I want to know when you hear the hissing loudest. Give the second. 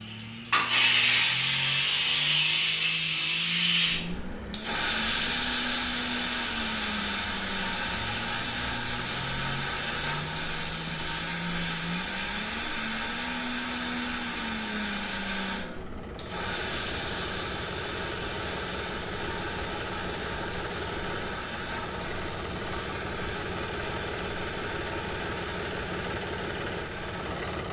1 s.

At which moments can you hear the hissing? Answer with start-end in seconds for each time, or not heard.
0.0-27.6.